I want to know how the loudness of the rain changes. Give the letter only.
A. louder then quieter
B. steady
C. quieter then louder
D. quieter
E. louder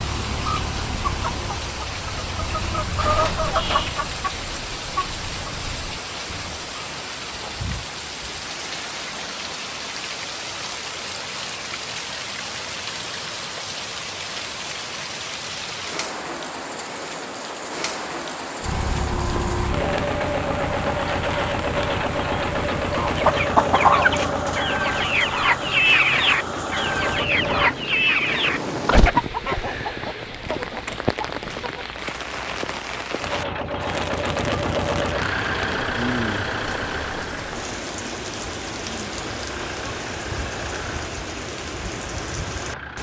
B.